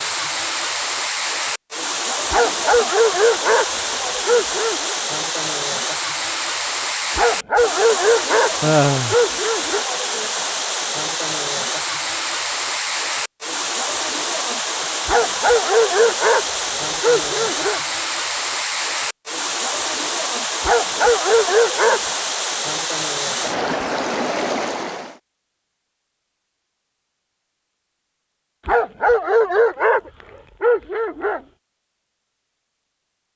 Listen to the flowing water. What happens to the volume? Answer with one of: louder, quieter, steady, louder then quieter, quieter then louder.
steady.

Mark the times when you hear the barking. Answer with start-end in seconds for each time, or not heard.
2.3-5.0, 7.2-9.8, 15.1-17.8, 20.6-22.0, 28.6-31.4.